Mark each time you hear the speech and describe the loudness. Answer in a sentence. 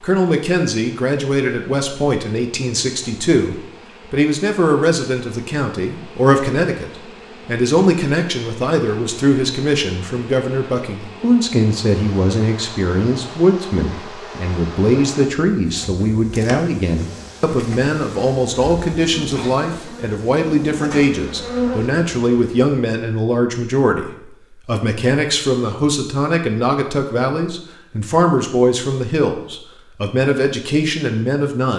You can hear the speech from 0.0 to 31.7 s, at a steady volume.